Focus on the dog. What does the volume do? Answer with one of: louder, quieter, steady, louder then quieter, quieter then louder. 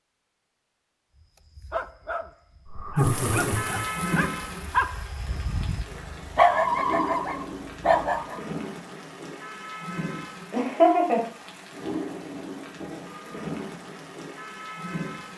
louder.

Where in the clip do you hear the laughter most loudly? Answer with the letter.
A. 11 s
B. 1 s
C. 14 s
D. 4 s
A.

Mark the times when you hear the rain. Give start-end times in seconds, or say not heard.
3.0-15.3.